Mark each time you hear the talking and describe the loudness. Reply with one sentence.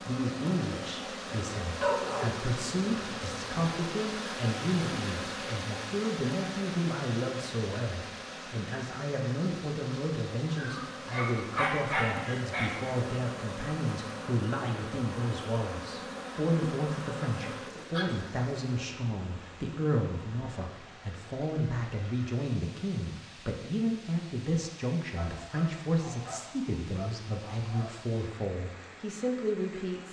You can hear the talking from 0.1 to 30.0 s, at a steady volume.